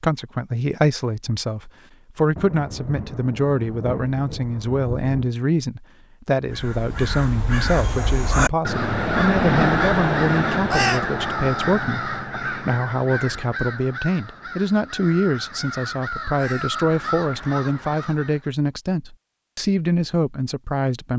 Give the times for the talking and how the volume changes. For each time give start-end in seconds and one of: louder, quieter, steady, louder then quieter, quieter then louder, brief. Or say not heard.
0.0-21.1 steady.